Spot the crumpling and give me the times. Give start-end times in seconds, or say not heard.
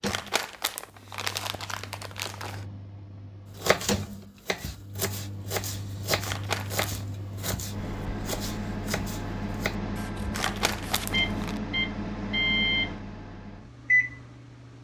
0.1-2.6, 6.2-7.0, 10.3-11.6.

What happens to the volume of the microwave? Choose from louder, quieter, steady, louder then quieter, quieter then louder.
louder.